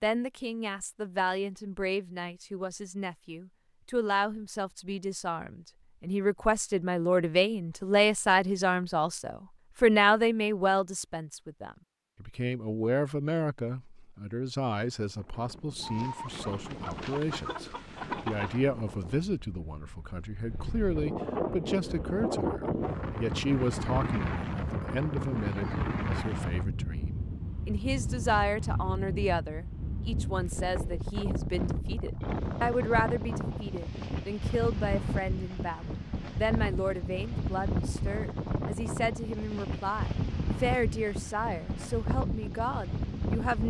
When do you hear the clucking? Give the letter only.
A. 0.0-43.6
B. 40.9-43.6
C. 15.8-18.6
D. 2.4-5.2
C.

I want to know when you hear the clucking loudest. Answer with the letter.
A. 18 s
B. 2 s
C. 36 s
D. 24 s
A.